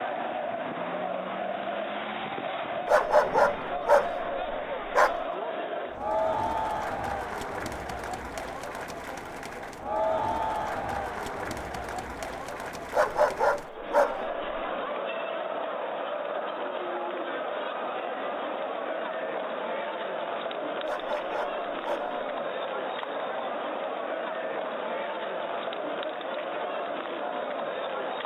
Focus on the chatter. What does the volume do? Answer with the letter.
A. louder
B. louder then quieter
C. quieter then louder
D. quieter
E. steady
E.